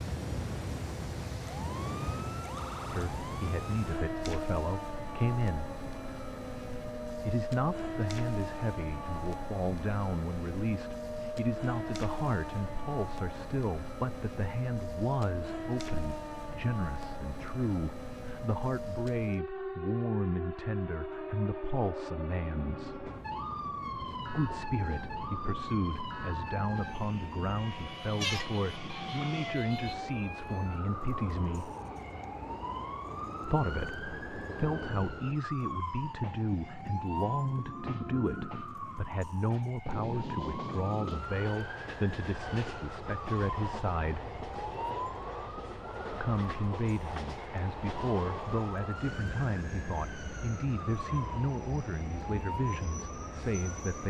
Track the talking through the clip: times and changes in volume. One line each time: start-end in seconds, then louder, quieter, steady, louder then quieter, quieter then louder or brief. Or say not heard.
2.9-5.7 brief
7.2-23.1 steady
24.3-31.8 steady
33.5-44.2 steady
46.2-54.0 steady.